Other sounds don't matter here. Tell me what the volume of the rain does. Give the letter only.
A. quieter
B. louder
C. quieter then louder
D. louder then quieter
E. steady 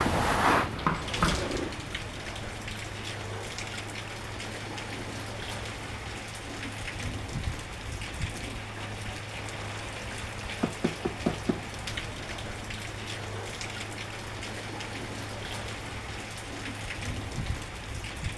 E.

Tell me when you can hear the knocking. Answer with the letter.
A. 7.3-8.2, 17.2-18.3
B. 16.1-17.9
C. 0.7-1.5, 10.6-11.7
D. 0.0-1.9
C.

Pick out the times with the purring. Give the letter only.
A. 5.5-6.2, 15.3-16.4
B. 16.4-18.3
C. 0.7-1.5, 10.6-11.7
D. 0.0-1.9
D.